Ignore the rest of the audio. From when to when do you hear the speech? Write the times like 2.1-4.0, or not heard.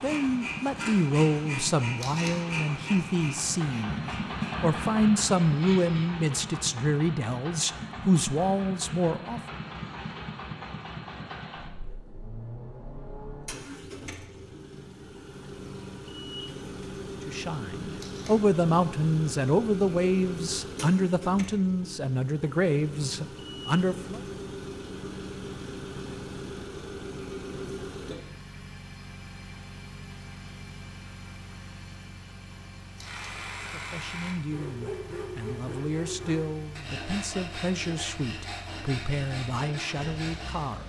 0.0-9.4, 17.2-24.2, 33.7-40.8.